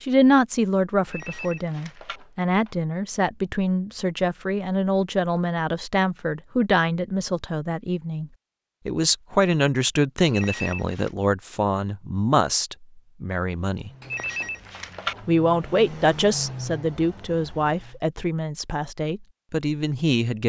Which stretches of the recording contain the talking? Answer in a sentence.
The talking can be heard from 0.0 to 13.9 s and from 15.2 to 20.4 s.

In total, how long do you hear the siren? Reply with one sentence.
You can't hear the siren here.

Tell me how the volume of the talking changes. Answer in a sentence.
The loudness of the talking stays about the same.